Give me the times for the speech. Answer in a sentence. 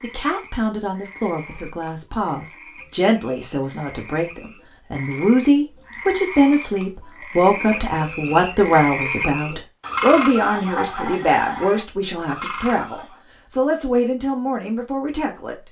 The speech can be heard from 0.0 to 15.6 s.